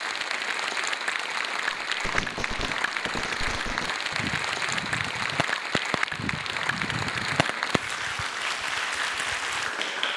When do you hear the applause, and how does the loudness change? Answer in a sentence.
You can hear the applause from 0.0 to 10.1 s, at a steady volume.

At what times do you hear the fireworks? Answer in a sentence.
The fireworks can be heard from 1.7 to 7.8 s.